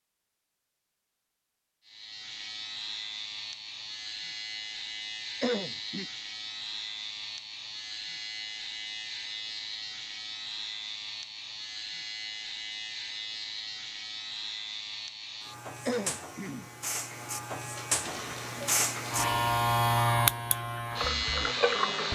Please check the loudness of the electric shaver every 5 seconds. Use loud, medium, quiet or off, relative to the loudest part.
medium, medium, medium, loud, loud.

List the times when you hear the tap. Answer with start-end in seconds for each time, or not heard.
18.0-22.1.